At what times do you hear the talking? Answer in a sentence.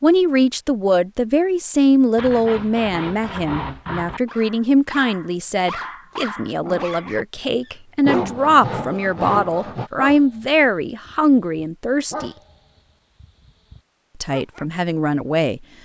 The talking can be heard from 0.0 to 12.3 s and from 14.2 to 15.6 s.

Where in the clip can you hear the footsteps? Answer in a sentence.
The footsteps can't be heard in this clip.